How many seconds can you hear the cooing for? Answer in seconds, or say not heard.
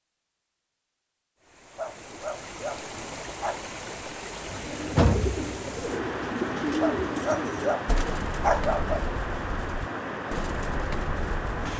7 s.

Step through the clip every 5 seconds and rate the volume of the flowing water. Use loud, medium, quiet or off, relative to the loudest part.
medium, loud, loud.